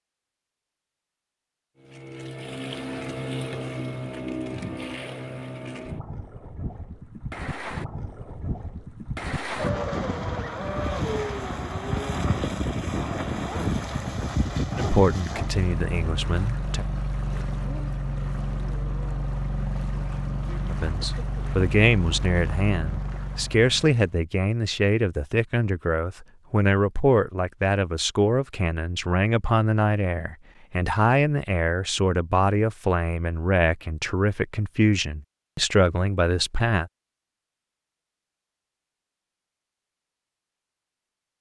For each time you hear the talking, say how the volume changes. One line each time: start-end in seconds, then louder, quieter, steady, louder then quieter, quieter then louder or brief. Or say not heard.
14.8-16.9 brief
20.7-36.9 steady.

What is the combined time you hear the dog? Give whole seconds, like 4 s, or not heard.
not heard.